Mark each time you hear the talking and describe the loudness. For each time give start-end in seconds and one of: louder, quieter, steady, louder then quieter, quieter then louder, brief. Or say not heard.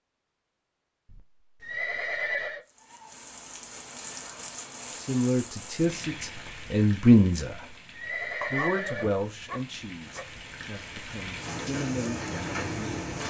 5.0-7.7 brief
8.5-13.0 quieter then louder.